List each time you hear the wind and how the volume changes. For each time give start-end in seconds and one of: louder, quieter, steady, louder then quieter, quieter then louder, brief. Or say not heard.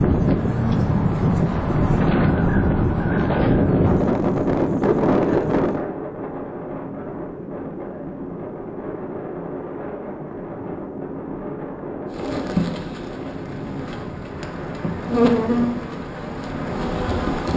0.0-17.5 quieter.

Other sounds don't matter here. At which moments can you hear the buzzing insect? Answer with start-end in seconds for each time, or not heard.
12.1-17.5.